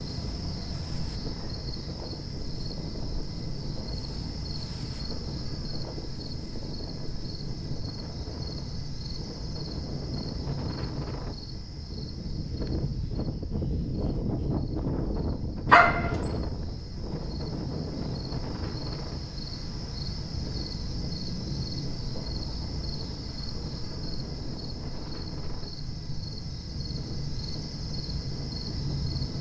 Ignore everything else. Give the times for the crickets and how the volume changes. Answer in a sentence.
You can hear the crickets from 0.0 to 29.3 s, getting quieter then louder.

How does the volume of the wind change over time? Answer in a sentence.
The loudness of the wind goes up, then down.